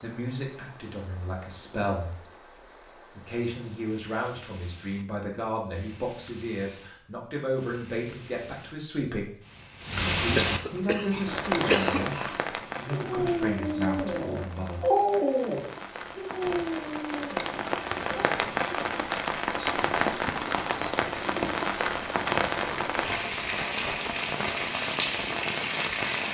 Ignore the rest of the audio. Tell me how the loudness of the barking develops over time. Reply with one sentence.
The loudness of the barking goes up, then down.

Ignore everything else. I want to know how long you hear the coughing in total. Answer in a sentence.
You can hear the coughing for 2 seconds altogether.